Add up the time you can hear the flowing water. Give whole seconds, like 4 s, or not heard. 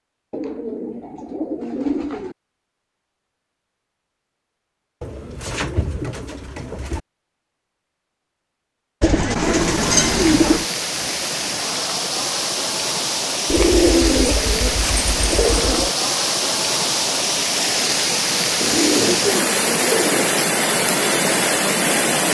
13 s.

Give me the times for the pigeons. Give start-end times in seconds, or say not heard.
0.3-2.4, 5.0-7.0, 9.0-10.7, 13.5-15.9, 18.6-20.3.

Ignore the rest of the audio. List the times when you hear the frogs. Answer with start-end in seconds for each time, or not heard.
not heard.